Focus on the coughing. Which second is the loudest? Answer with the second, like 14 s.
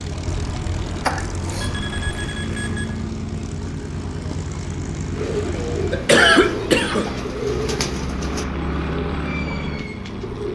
6 s.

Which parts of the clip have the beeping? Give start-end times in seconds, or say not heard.
1.6-3.0.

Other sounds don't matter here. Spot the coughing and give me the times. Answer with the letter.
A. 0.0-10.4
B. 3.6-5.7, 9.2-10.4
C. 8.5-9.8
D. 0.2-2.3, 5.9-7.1
D.